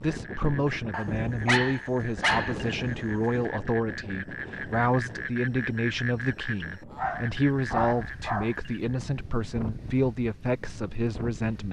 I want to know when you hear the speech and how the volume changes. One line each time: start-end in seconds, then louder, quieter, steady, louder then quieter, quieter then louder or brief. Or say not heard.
0.0-11.6 steady.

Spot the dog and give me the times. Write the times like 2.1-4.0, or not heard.
0.9-3.3, 7.0-8.5.